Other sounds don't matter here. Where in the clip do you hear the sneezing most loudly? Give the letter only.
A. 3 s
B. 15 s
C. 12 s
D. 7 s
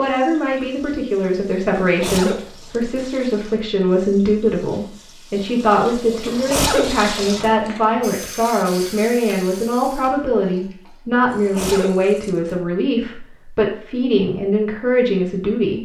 D.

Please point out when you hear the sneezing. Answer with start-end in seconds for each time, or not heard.
1.8-3.0, 6.2-7.5, 11.3-12.6.